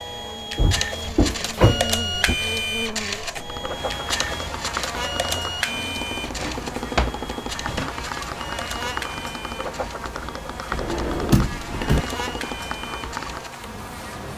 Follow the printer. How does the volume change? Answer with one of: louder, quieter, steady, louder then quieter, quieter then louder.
quieter.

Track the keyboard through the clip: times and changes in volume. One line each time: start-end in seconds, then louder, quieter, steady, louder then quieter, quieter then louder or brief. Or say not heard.
3.4-13.6 steady.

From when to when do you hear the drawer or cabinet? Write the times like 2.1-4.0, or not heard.
0.6-2.4, 5.7-7.9, 10.7-12.1.